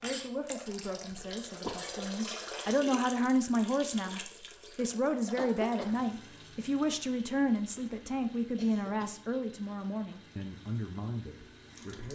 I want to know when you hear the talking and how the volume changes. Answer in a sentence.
You can hear the talking from 0.0 to 12.1 s, getting louder then quieter.